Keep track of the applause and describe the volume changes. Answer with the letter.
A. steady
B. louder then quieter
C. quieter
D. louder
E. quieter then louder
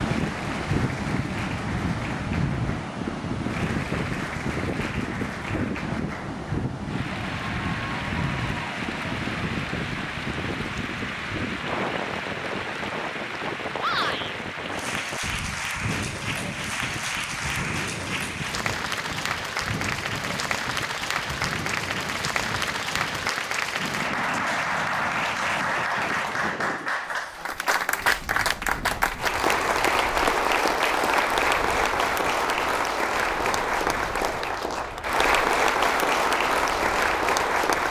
D.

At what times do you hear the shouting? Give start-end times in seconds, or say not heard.
13.8-14.3.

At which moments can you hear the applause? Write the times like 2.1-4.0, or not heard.
0.0-37.8.